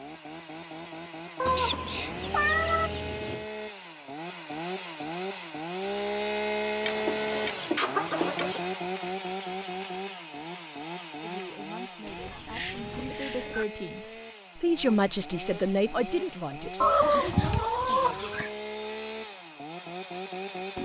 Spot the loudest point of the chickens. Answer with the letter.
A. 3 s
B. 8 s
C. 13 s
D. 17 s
D.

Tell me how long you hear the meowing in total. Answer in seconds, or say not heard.
2 s.